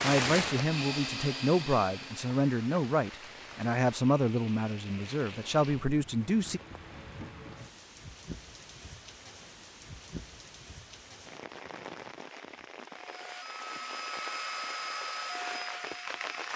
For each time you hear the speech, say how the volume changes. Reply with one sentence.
You can hear the speech from 0.0 to 6.6 s, at a steady volume.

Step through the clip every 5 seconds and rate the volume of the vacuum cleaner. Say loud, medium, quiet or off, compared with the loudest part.
loud, off, loud, loud.